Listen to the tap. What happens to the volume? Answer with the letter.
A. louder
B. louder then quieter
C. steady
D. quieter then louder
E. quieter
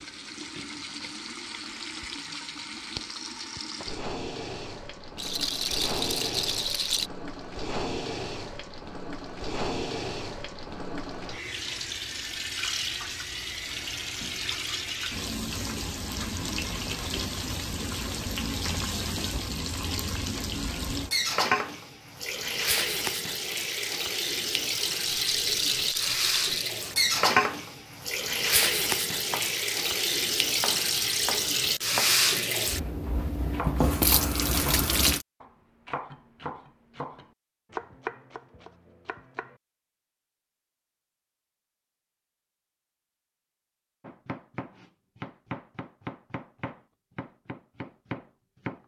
A.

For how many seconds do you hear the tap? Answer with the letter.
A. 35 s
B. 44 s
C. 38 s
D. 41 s
A.